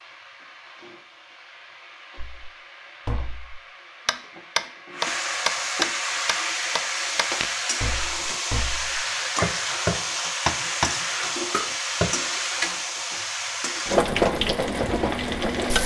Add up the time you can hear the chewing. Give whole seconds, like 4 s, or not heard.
not heard.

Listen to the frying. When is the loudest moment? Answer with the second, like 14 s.
14 s.